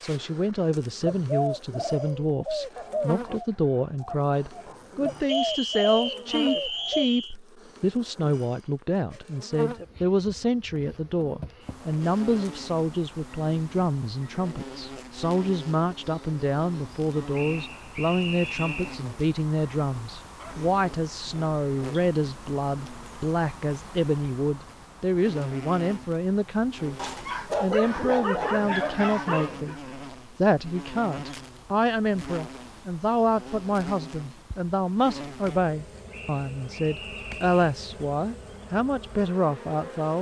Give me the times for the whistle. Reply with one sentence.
You can hear the whistle from 5.2 to 7.3 s, from 17.4 to 19.0 s and from 36.1 to 37.6 s.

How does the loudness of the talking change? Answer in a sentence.
The loudness of the talking stays about the same.